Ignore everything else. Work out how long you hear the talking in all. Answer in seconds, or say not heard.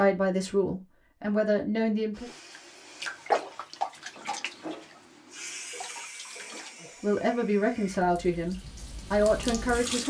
5 s.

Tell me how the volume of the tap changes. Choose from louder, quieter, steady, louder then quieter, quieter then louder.
quieter then louder.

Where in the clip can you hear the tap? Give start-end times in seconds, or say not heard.
2.1-10.0.